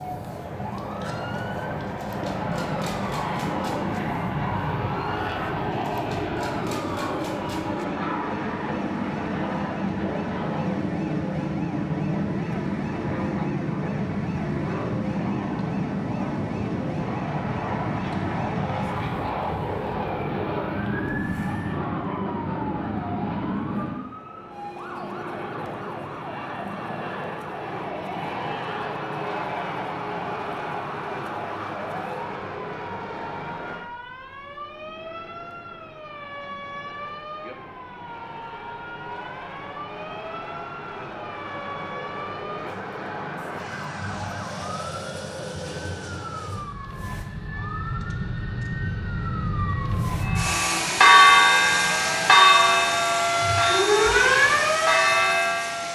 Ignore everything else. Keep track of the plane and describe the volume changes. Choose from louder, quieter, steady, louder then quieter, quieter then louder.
quieter then louder.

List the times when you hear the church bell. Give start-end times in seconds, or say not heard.
50.2-55.8.